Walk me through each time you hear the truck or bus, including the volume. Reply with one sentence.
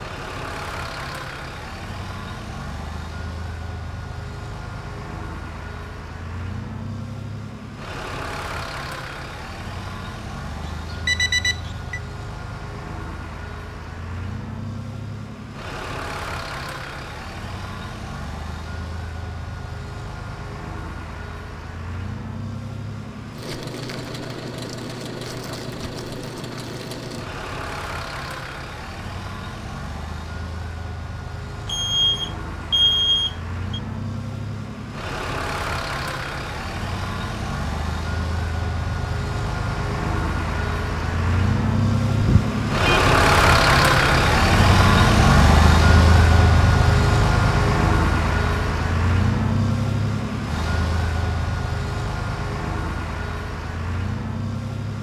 You can hear the truck or bus from 0.0 to 54.9 s, getting louder.